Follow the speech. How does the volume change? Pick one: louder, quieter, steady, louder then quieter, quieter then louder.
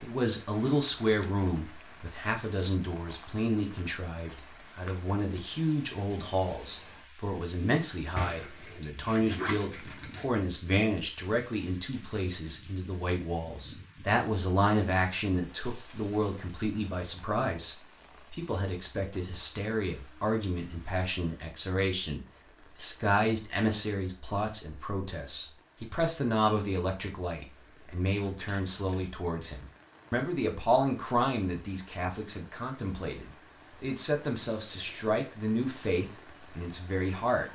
steady.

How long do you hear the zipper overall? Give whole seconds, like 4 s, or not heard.
2 s.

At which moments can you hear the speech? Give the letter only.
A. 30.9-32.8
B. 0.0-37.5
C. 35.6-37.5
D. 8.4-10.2
B.